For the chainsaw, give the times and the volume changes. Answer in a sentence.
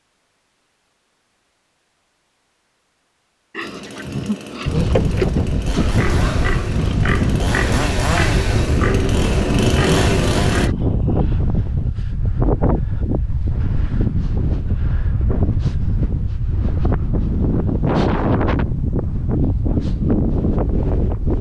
You can hear the chainsaw from 3.6 to 10.7 s, getting louder.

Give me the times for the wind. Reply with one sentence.
The wind can be heard from 4.7 to 21.3 s.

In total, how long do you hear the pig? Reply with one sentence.
You can hear the pig for 7 seconds altogether.